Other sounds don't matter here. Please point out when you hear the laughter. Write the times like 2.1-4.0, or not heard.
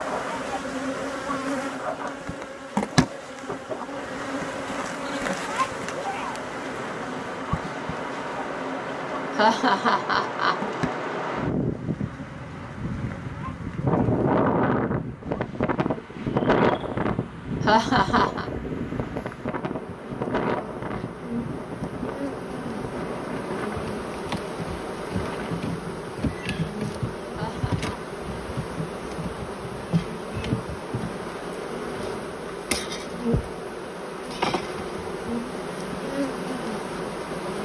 9.3-10.6, 17.6-18.4, 27.4-28.0.